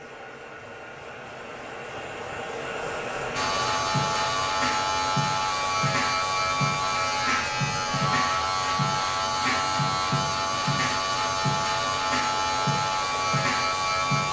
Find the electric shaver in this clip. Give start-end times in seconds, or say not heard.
3.3-14.2.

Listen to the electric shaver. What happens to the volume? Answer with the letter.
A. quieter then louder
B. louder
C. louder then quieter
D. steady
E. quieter
D.